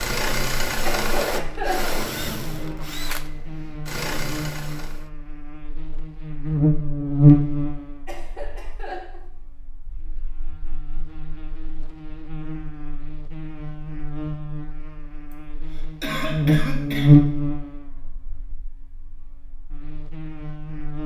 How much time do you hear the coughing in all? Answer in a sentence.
You can hear the coughing for 4 seconds altogether.